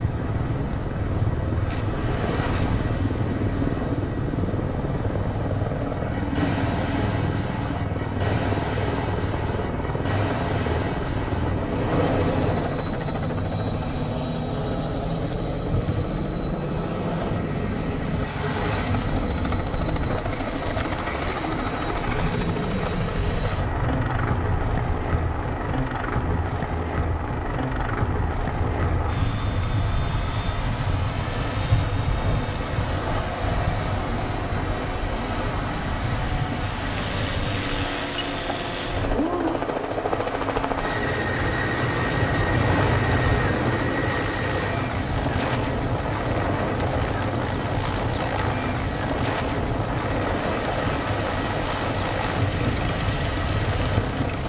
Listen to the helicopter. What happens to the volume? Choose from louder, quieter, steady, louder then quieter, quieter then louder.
steady.